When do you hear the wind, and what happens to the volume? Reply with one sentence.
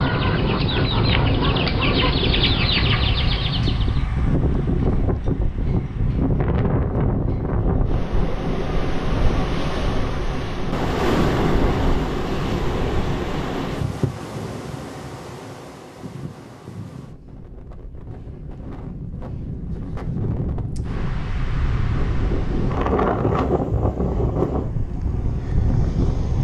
The wind can be heard from 0.0 to 26.3 s, getting quieter then louder.